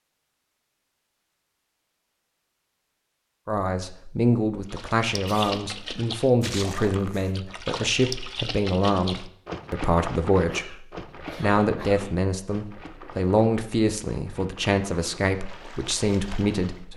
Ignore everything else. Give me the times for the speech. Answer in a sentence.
The speech can be heard from 3.5 to 16.9 s.